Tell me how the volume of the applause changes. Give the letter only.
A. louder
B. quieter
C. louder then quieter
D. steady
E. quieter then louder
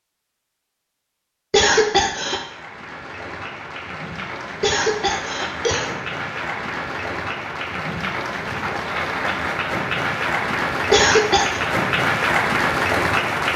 A.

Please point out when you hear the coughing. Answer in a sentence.
The coughing can be heard from 1.5 to 2.4 s, from 4.6 to 5.9 s and from 10.9 to 11.6 s.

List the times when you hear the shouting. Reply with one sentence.
You can't hear the shouting here.